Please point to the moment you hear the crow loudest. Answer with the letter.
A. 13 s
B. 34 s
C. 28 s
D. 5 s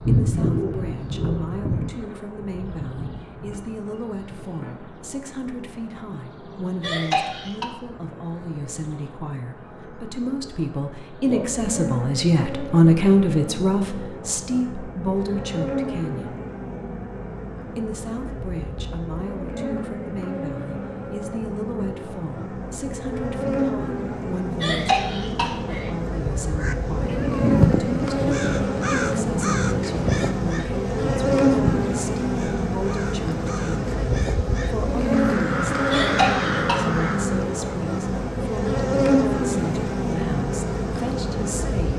C.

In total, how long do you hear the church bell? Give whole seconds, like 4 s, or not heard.
not heard.